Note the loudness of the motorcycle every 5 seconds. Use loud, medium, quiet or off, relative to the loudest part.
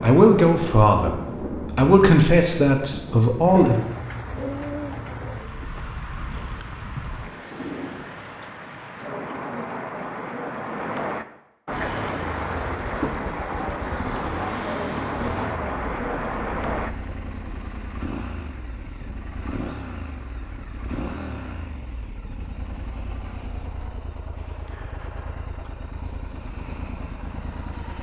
off, off, loud, loud, loud, loud.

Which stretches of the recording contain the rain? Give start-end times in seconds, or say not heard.
0.0-16.9.